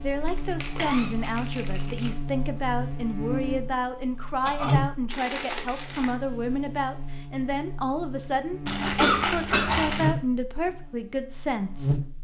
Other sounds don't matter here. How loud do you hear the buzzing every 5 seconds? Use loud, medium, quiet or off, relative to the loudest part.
loud, medium, loud.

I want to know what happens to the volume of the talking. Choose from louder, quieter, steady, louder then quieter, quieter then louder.
steady.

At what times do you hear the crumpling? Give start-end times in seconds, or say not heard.
0.2-2.1, 5.1-6.2, 8.7-10.1.